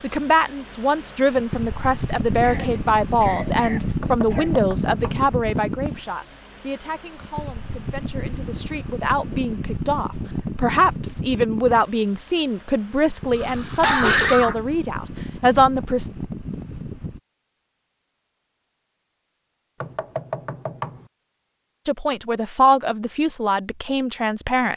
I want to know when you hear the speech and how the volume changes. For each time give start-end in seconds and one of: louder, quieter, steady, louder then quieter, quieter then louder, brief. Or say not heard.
0.0-16.1 quieter then louder
21.9-24.7 brief.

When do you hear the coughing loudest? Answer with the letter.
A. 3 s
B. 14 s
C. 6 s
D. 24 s
B.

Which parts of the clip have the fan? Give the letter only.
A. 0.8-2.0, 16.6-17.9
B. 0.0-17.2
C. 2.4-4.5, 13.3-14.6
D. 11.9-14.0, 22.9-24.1
B.